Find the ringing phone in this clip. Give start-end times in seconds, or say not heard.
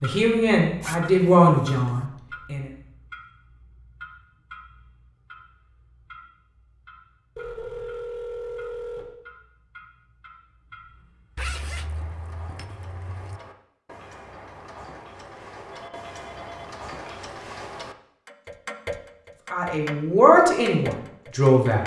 7.3-9.1, 15.3-17.2.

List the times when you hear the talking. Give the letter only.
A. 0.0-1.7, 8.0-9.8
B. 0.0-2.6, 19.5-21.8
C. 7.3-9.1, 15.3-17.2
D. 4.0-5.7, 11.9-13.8
B.